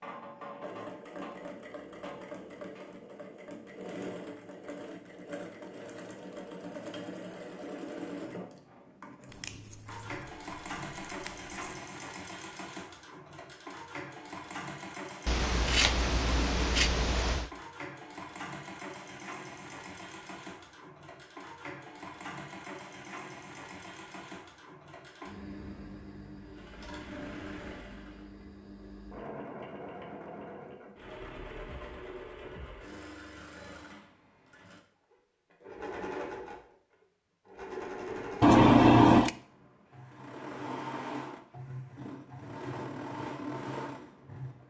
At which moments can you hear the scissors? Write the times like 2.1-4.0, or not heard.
9.3-11.5, 15.2-17.5, 38.4-39.4.